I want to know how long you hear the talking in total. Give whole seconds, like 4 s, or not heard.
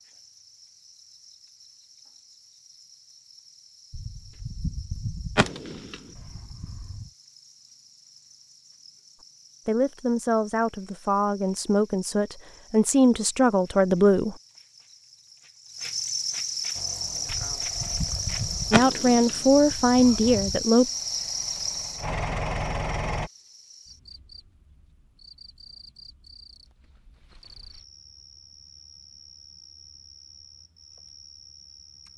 7 s.